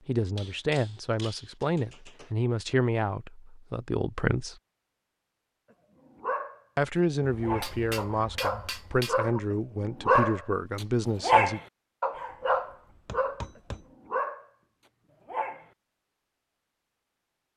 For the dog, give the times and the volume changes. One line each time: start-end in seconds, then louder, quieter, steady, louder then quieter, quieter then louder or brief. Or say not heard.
6.2-15.7 louder then quieter.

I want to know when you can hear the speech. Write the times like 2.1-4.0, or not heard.
0.1-4.5, 6.8-11.6.